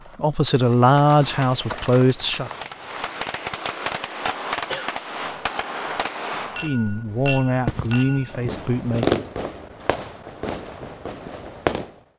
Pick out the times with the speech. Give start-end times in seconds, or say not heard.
0.1-2.5, 6.6-9.2.